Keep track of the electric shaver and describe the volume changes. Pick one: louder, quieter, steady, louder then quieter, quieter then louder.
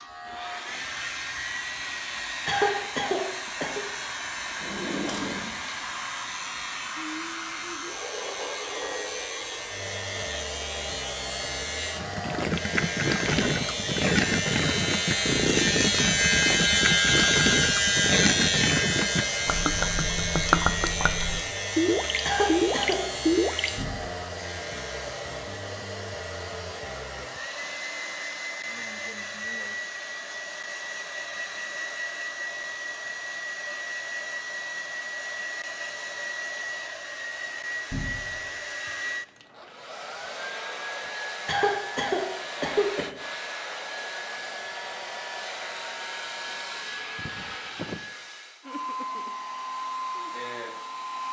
louder then quieter.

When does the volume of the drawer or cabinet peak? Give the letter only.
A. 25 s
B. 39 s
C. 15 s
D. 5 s
D.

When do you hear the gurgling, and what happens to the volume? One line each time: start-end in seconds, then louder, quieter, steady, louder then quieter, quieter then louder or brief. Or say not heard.
11.9-23.7 steady.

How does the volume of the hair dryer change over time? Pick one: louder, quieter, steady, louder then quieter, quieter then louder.
steady.